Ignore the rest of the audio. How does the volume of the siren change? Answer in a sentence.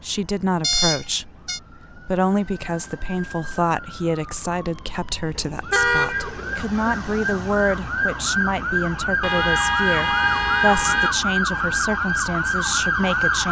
The loudness of the siren goes up.